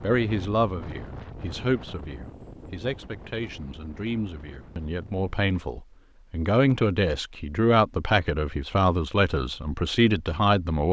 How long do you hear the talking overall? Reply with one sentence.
You can hear the talking for 11 seconds altogether.